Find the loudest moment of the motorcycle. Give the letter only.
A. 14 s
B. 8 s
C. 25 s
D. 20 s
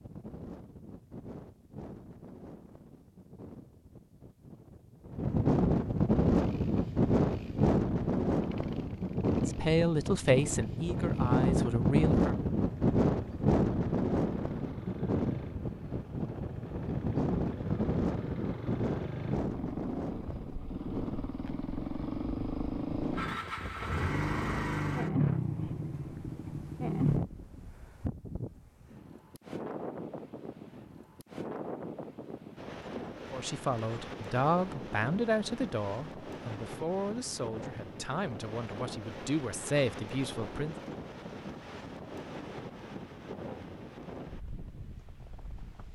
C.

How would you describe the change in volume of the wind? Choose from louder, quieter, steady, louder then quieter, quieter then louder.
quieter.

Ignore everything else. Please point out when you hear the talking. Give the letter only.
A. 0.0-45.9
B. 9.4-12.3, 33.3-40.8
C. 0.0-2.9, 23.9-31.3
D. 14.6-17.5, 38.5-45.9
B.